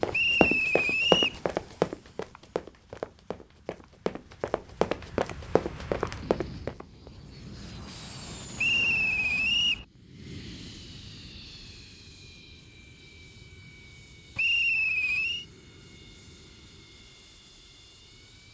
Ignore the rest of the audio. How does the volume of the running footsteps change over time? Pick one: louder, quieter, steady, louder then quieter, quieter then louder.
quieter then louder.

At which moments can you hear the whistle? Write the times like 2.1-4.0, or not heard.
0.1-1.4, 8.6-9.8, 14.3-15.4.